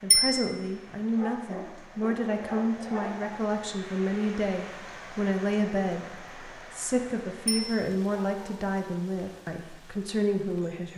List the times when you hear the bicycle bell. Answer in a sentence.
The bicycle bell can be heard from 0.1 to 0.6 s and from 7.5 to 8.0 s.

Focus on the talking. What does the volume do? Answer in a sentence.
The loudness of the talking stays about the same.